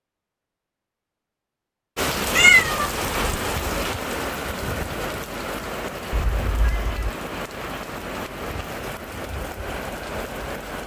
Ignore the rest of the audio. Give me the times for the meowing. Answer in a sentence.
You can hear the meowing from 2.4 to 3.5 s and from 6.1 to 7.1 s.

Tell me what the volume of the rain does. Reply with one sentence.
The volume of the rain goes down.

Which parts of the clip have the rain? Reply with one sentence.
You can hear the rain from 1.9 to 10.8 s.